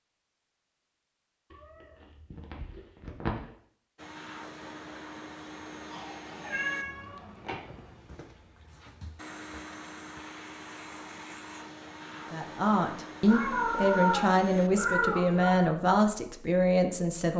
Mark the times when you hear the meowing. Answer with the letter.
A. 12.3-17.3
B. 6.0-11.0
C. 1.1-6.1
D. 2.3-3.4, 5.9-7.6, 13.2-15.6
D.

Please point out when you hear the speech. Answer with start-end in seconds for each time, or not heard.
12.3-17.3.